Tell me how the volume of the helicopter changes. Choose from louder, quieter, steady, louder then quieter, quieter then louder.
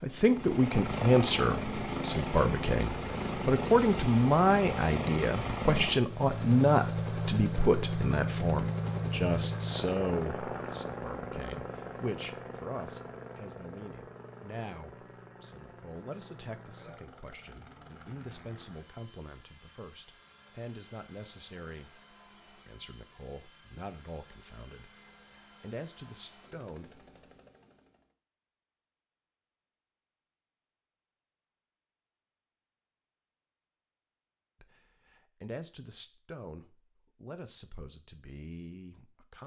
quieter.